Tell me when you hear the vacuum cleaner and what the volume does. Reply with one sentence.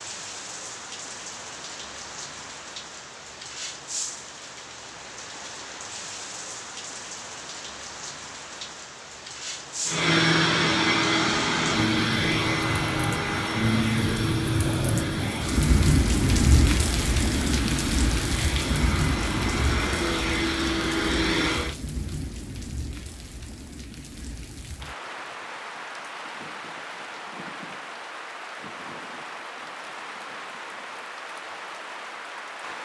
The vacuum cleaner can be heard from 9.8 to 21.8 s, getting quieter then louder.